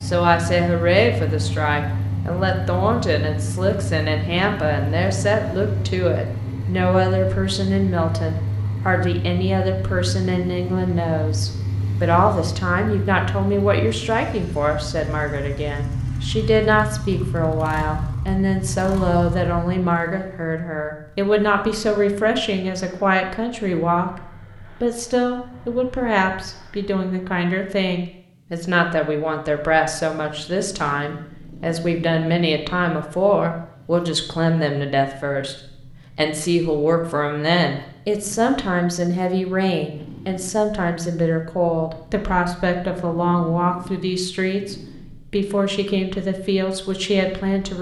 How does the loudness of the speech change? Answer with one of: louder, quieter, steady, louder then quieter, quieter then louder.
steady.